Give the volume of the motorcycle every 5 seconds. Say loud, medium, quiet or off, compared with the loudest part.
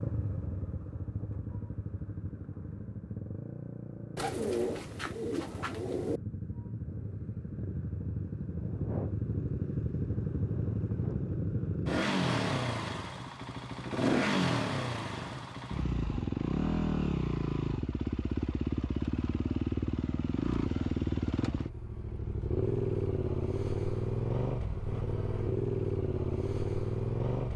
medium, medium, loud, loud, loud, loud.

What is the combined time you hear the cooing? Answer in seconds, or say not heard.
2 s.